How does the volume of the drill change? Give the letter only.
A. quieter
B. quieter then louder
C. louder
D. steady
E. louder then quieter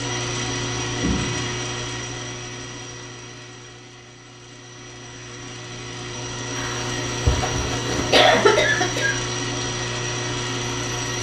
B.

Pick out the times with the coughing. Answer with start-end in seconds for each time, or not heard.
0.9-1.4, 6.5-9.2.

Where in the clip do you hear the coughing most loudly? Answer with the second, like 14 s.
8 s.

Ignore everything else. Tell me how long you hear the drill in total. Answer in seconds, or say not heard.
11 s.